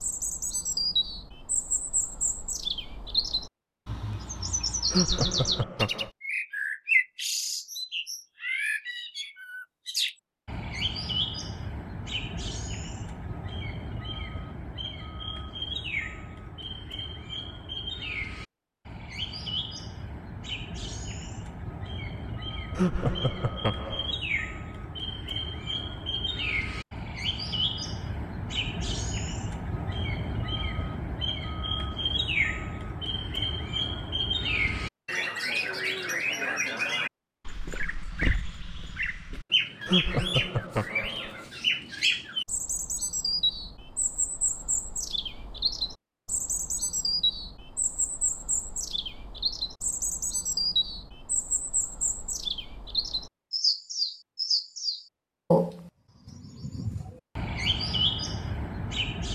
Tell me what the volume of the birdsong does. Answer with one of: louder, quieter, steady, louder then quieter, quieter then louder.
quieter then louder.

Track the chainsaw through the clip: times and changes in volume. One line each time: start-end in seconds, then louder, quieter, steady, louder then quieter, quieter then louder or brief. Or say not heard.
not heard.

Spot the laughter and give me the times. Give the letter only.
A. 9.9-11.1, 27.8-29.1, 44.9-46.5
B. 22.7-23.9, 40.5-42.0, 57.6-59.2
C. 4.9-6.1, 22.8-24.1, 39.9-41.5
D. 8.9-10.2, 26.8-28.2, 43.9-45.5
C.